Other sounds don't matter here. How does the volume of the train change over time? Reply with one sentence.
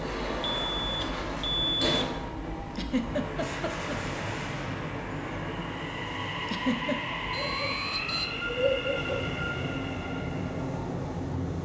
The volume of the train stays about the same.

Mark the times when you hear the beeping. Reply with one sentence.
You can hear the beeping from 0.4 to 2.3 s and from 7.3 to 9.2 s.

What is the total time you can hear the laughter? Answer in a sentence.
The laughter can be heard for 2 seconds in total.